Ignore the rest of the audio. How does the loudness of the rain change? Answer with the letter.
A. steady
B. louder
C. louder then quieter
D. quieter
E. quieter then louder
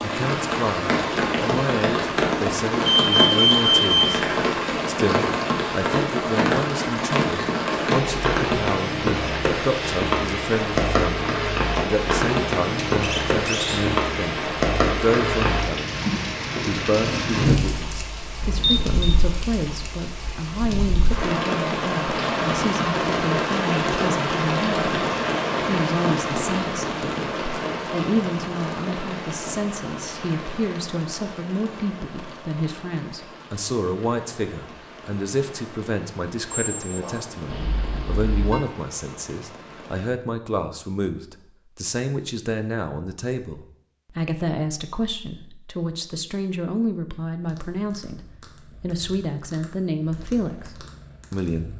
D.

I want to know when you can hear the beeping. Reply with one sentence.
You can hear the beeping from 2.8 to 4.2 s, from 18.4 to 19.1 s and from 37.5 to 38.6 s.